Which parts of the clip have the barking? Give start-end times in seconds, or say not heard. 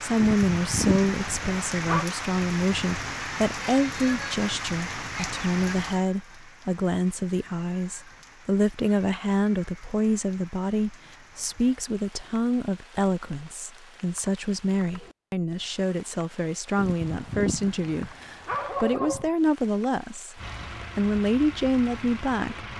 0.1-2.0, 16.8-19.3.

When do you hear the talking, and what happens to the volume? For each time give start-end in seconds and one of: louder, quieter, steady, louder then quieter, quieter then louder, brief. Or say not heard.
0.0-22.6 steady.